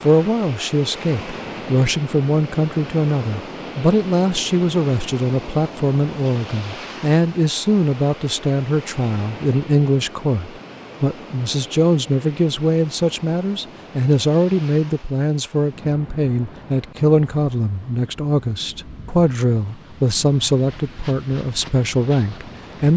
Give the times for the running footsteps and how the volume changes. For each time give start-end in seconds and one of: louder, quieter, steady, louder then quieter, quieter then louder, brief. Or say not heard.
not heard.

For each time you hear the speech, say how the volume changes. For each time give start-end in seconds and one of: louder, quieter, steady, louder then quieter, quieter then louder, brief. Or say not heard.
0.0-22.9 steady.